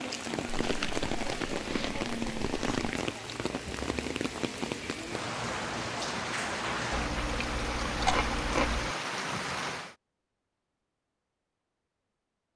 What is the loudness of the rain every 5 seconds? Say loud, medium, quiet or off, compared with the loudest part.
loud, loud, off.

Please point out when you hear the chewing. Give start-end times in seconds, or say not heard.
0.5-3.0, 6.9-8.9.